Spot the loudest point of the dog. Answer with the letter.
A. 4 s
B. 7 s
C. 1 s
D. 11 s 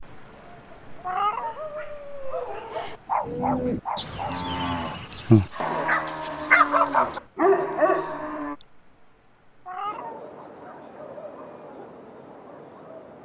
B.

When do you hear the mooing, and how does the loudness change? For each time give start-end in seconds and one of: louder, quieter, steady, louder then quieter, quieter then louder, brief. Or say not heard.
3.2-8.6 louder then quieter.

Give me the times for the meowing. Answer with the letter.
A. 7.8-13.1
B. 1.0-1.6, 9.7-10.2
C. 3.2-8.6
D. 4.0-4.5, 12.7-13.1
B.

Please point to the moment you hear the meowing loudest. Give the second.
1 s.